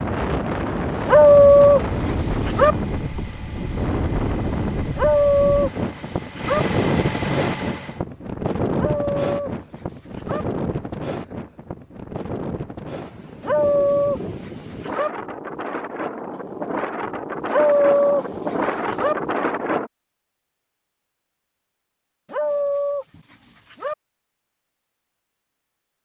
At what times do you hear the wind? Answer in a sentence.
You can hear the wind from 0.0 to 19.9 s.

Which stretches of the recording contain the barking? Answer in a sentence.
The barking can be heard from 1.1 to 2.8 s, from 5.0 to 6.6 s, from 8.8 to 10.4 s, from 13.4 to 15.1 s, from 17.4 to 19.1 s and from 22.3 to 23.9 s.